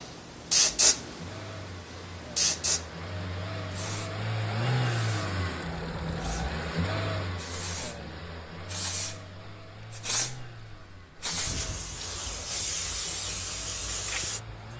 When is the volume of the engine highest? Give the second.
5 s.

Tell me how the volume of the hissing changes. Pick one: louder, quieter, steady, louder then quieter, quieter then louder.
quieter then louder.